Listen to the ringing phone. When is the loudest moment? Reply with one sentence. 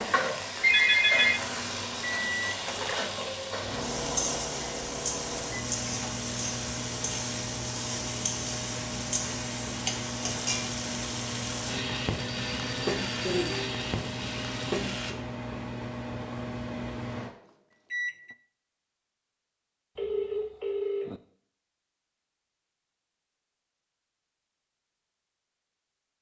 The loudest moment of the ringing phone is at 1 second.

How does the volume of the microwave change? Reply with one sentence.
The loudness of the microwave stays about the same.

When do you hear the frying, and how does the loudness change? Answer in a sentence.
The frying can be heard from 0.0 to 15.2 s, at a steady volume.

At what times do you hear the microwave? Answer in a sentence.
The microwave can be heard from 0.0 to 18.4 s.